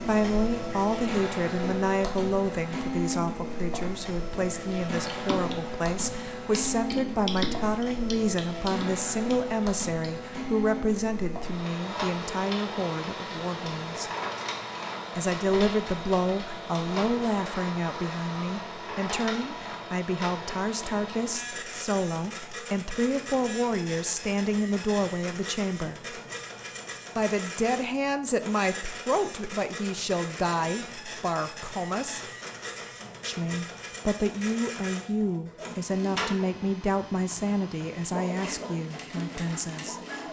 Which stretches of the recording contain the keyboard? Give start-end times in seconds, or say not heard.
4.7-10.2.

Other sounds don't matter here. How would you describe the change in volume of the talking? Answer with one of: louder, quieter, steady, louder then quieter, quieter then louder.
steady.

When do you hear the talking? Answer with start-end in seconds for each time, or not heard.
0.0-14.1, 15.2-26.1, 27.1-32.2, 33.2-40.0.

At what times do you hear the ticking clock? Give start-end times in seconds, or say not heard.
not heard.